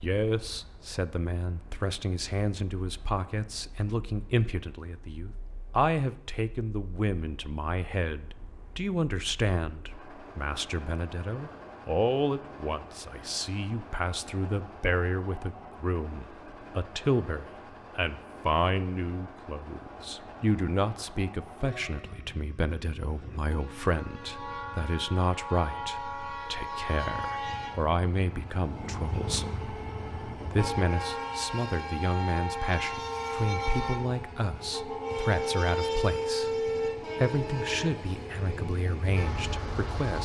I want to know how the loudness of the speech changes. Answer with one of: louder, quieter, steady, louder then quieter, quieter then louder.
steady.